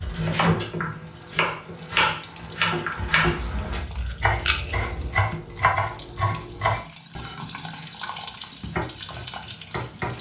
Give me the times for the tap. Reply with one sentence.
The tap can be heard from 0.0 to 10.1 s.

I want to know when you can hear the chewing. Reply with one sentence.
You can hear the chewing from 3.4 to 5.2 s.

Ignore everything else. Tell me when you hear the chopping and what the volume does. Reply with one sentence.
The chopping can be heard from 0.0 to 10.1 s, getting quieter.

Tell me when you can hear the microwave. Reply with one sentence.
You can't hear the microwave here.